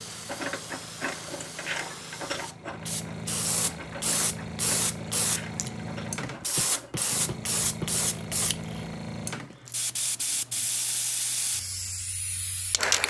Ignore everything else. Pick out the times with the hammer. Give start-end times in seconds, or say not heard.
6.5-8.0.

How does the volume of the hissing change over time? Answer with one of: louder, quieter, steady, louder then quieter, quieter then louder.
louder.